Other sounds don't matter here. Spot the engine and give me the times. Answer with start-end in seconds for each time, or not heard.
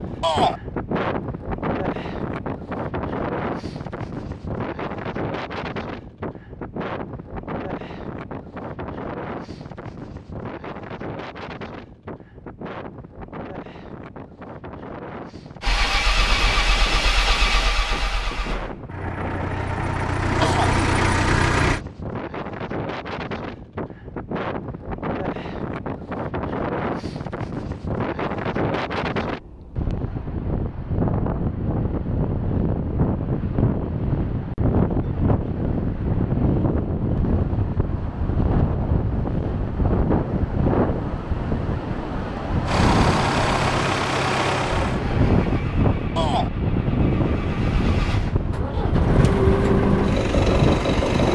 15.6-21.8, 42.6-51.2.